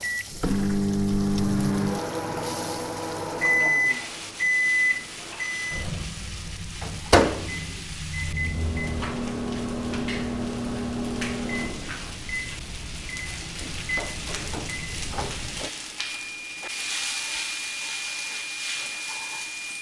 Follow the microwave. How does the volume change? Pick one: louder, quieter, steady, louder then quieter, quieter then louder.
quieter.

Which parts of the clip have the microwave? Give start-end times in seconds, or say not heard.
0.0-19.7.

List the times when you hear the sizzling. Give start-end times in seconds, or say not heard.
0.0-19.7.